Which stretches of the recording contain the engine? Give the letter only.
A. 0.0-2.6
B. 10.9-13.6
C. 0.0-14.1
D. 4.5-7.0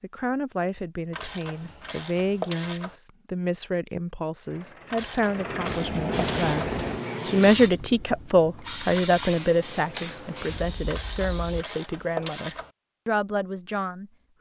D.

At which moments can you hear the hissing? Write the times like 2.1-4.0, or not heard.
6.1-11.7.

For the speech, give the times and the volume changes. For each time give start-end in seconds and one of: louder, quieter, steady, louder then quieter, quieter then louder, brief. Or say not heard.
0.0-14.1 louder then quieter.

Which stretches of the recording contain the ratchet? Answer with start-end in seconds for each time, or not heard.
1.1-3.0, 4.9-6.8, 10.8-12.7.